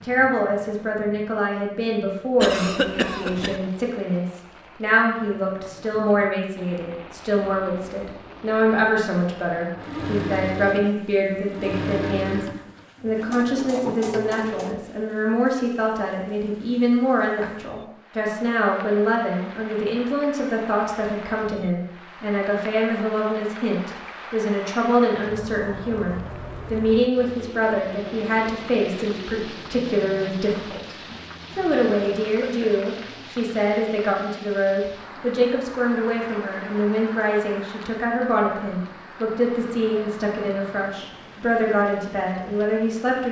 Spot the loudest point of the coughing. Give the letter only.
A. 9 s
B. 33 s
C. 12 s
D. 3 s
D.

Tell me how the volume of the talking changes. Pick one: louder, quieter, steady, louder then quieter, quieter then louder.
steady.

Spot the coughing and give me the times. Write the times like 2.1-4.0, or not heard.
2.4-3.6, 32.0-33.0.